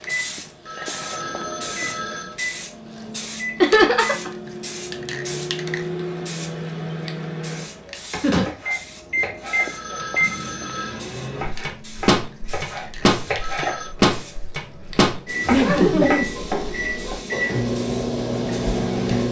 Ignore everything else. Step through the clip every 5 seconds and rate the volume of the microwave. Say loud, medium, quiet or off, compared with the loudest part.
medium, loud, loud, loud.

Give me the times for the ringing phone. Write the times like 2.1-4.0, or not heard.
0.3-2.4, 9.2-11.1, 13.2-13.9.